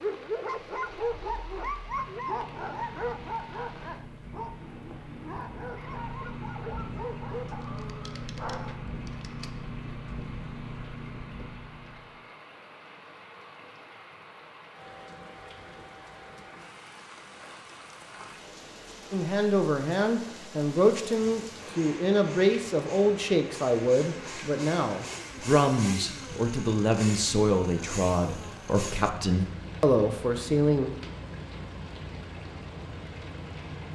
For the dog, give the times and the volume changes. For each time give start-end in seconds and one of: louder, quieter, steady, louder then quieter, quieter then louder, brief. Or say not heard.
0.0-9.5 quieter.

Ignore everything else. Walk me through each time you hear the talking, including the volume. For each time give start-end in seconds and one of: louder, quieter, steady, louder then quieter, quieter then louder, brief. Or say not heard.
19.1-30.9 steady.